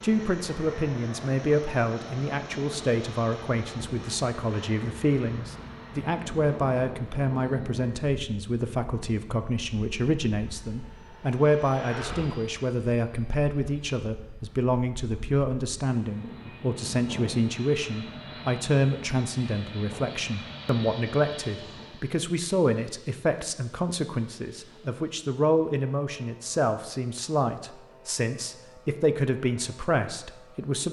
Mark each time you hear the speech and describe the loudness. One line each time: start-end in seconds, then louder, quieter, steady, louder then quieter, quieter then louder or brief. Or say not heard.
0.0-30.8 steady.